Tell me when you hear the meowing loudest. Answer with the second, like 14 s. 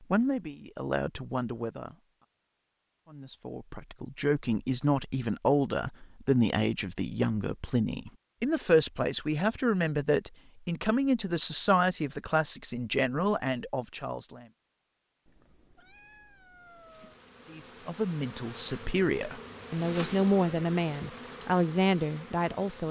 17 s.